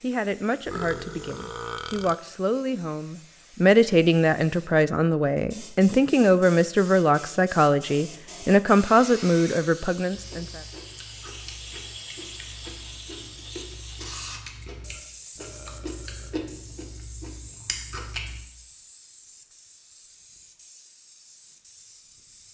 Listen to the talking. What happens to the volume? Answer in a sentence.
The loudness of the talking goes up.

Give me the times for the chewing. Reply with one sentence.
You can hear the chewing from 10.1 to 18.4 s.